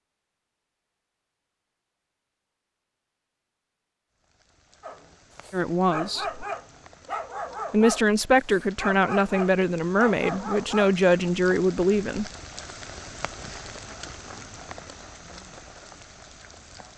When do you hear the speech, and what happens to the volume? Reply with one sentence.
You can hear the speech briefly from 5.5 to 6.5 s; and from 7.7 to 12.2 s, at a steady volume.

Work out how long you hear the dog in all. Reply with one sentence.
You can hear the dog for 6 seconds altogether.